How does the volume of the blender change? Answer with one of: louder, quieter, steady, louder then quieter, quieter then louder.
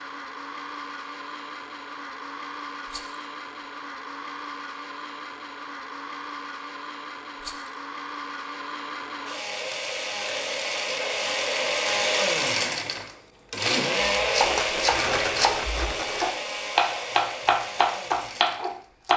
louder then quieter.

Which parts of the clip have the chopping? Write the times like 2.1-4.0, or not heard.
14.1-19.1.